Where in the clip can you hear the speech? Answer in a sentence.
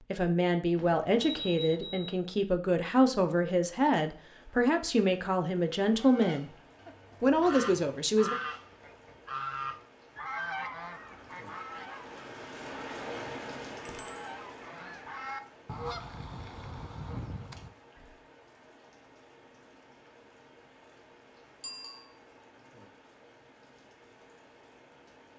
The speech can be heard from 0.1 to 6.5 s and from 7.2 to 8.3 s.